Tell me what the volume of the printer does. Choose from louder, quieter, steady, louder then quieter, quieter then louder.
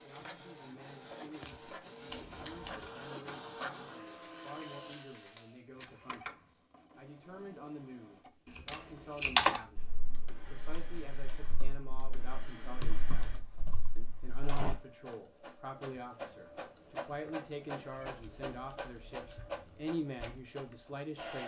quieter then louder.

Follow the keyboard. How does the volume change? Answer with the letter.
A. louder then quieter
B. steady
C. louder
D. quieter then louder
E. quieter
A.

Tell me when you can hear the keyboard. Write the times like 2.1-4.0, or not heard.
9.2-14.8.